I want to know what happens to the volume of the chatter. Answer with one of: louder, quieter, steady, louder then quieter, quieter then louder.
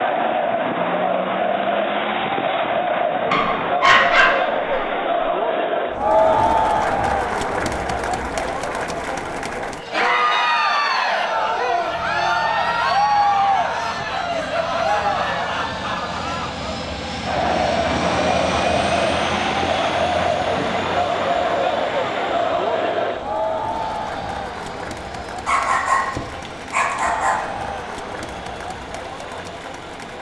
quieter.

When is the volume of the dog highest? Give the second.
4 s.